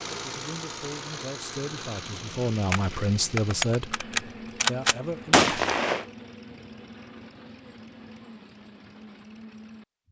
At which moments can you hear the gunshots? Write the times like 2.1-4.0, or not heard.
2.7-6.0.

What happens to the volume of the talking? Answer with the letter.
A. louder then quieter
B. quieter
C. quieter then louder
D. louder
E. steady
A.